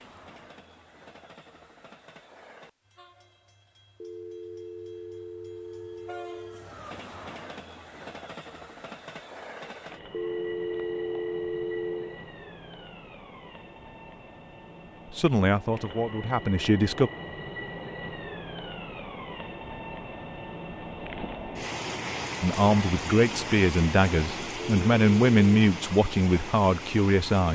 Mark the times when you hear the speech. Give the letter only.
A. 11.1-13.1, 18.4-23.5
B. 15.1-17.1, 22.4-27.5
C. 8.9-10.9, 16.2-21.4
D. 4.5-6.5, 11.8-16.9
B.